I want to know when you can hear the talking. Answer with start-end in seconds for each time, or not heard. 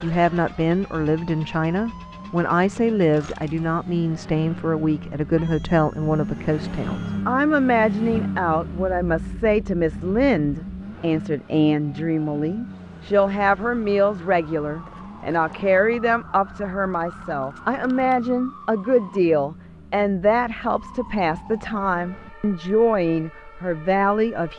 0.0-24.5.